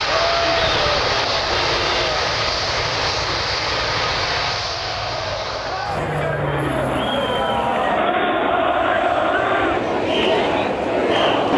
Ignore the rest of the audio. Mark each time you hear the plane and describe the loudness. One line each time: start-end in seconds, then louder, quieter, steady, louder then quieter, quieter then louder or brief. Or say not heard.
0.0-11.5 quieter.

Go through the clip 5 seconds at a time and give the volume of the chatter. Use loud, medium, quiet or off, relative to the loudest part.
medium, loud, loud.